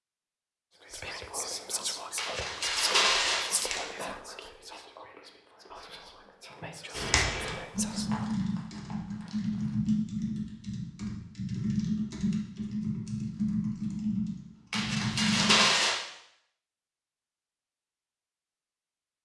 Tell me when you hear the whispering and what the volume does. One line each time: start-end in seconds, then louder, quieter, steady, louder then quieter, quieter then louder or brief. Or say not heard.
0.8-8.3 quieter then louder.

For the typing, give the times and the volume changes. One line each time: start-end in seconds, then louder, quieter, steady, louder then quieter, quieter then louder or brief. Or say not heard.
6.9-15.7 steady.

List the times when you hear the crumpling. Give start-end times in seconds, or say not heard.
2.1-3.9, 7.8-9.8, 14.7-16.1.